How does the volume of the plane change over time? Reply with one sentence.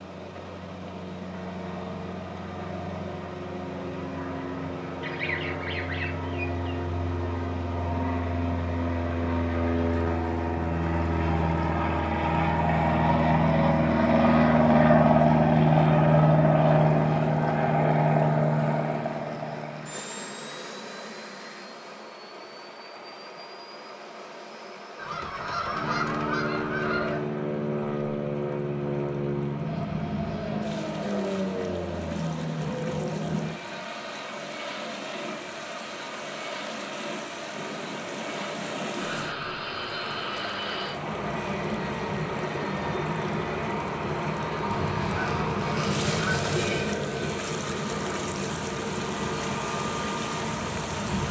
The volume of the plane goes up, then down.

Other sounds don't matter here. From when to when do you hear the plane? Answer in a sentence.
The plane can be heard from 0.0 to 51.2 s.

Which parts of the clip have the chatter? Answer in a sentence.
The chatter can't be heard in this clip.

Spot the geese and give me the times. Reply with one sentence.
You can hear the geese from 5.0 to 6.8 s, from 24.9 to 27.2 s and from 44.6 to 47.0 s.